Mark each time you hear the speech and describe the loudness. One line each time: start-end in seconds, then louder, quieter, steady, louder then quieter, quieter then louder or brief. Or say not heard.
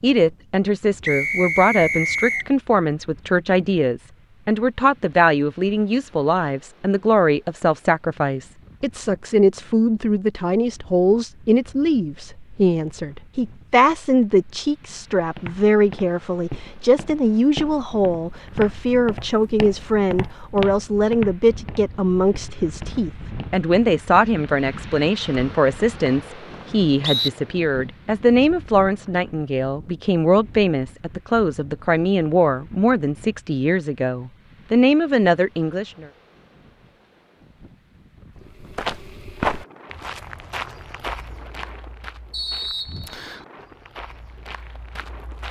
0.0-36.0 steady.